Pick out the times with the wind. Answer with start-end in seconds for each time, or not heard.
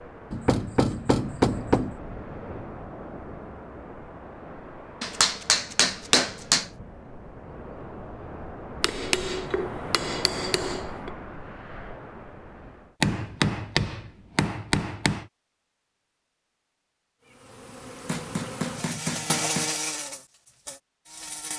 0.0-12.9.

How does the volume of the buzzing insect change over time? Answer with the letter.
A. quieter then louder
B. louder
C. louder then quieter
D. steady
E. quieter
C.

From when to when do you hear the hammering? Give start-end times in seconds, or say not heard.
0.3-1.9, 5.0-6.7, 8.8-11.1, 13.0-15.2, 18.1-19.7.